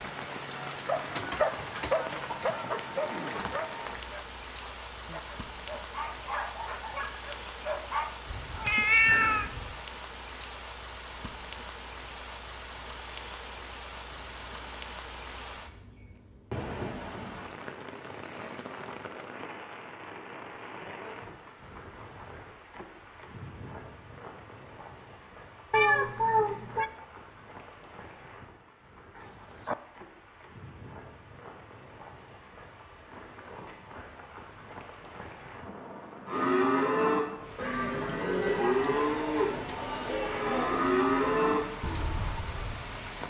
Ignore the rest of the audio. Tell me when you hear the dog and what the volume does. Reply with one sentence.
The dog can be heard from 0.8 to 8.2 s, getting quieter then louder.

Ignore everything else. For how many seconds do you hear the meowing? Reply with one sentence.
You can hear the meowing for 3 seconds altogether.